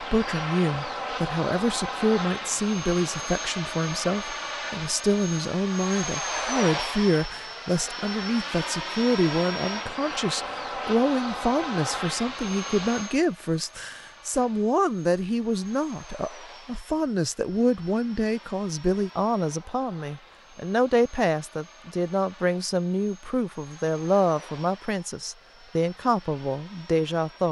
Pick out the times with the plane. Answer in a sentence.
The plane can be heard from 0.0 to 27.4 s.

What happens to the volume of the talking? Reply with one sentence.
The volume of the talking stays about the same.